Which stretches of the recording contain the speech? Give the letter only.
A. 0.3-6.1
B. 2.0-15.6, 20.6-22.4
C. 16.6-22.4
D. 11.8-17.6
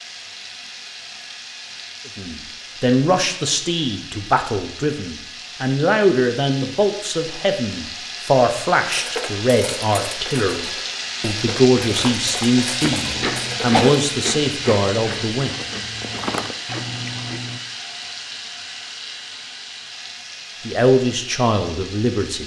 B.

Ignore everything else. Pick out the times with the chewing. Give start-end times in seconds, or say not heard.
11.8-17.6.